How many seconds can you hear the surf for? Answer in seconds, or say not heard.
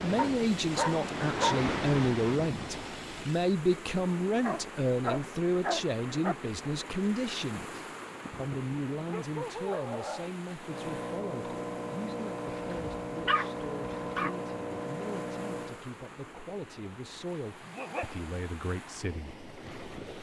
20 s.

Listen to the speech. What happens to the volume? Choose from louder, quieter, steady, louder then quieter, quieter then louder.
quieter.